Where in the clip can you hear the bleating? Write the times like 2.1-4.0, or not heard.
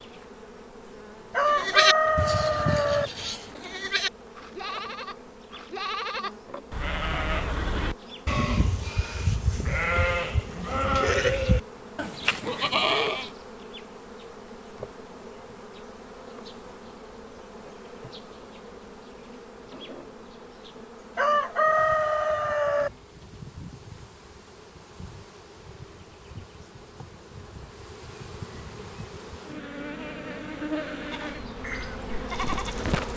1.4-13.3, 31.1-32.9.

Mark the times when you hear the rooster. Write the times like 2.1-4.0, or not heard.
1.3-3.1, 21.1-22.9.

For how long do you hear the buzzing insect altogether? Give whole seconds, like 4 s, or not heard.
33 s.